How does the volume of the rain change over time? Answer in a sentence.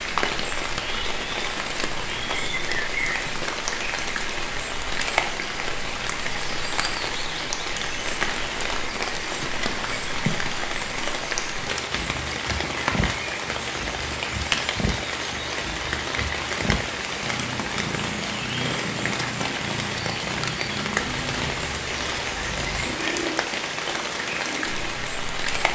The loudness of the rain stays about the same.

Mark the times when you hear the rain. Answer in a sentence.
The rain can be heard from 0.0 to 25.7 s.